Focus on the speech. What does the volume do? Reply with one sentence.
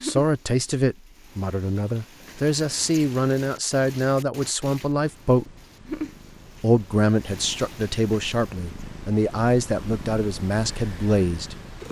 The loudness of the speech stays about the same.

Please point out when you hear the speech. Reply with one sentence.
The speech can be heard from 0.0 to 5.5 s and from 6.6 to 11.6 s.